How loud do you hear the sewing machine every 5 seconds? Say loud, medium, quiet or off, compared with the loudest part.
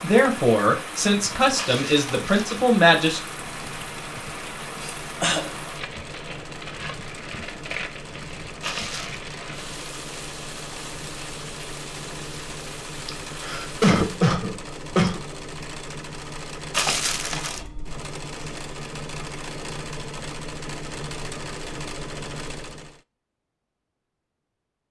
medium, medium, loud, loud, loud.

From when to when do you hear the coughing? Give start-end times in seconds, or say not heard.
4.8-5.5, 13.1-15.2.